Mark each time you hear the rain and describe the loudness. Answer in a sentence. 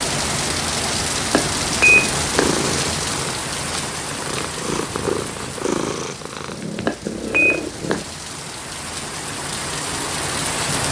You can hear the rain from 0.0 to 10.8 s, getting quieter then louder.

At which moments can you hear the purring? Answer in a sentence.
You can hear the purring from 1.8 to 8.1 s.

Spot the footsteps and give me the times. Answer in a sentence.
The footsteps can't be heard in this clip.